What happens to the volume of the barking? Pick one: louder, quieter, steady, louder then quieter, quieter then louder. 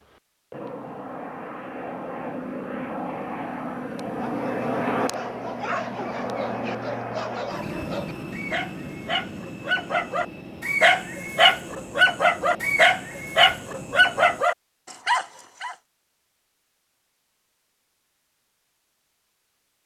louder.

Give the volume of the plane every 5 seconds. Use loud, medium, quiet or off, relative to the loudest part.
loud, loud, medium, off.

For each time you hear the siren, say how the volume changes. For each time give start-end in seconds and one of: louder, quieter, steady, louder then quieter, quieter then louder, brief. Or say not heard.
not heard.